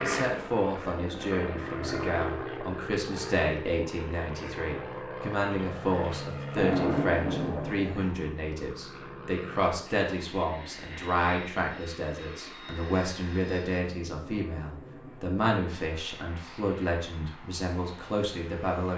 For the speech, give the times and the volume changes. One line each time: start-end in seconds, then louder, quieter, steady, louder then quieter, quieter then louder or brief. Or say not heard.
0.0-18.9 steady.